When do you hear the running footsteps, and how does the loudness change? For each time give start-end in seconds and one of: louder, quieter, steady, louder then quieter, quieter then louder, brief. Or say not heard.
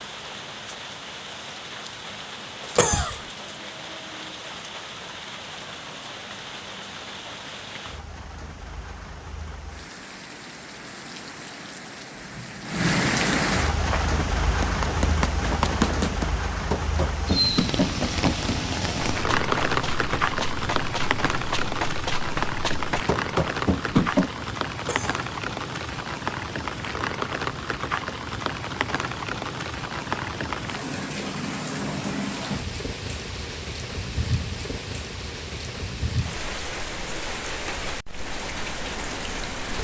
13.8-24.4 quieter then louder.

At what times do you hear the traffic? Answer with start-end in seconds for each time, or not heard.
not heard.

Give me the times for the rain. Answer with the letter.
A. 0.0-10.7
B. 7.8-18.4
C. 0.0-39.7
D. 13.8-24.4
C.